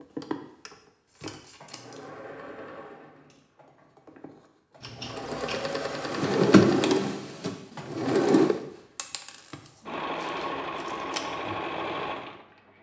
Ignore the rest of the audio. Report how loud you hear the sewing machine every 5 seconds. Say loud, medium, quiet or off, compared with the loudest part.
medium, loud, loud.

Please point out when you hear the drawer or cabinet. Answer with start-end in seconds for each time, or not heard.
6.1-8.6.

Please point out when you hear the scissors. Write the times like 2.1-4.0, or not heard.
1.1-2.0, 4.8-5.8, 9.6-11.2.